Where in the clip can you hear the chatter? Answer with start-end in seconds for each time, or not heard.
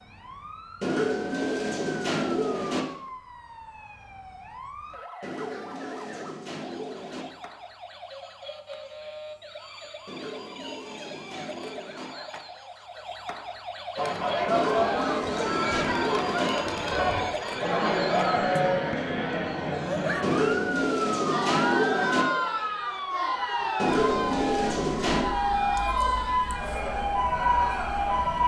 13.9-28.4.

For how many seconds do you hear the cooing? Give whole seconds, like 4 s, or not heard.
12 s.